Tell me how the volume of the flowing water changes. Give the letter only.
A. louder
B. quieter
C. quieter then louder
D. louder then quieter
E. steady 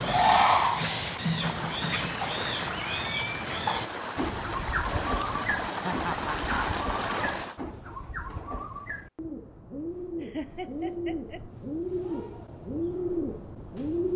A.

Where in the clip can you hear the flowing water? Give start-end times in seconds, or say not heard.
0.0-7.6.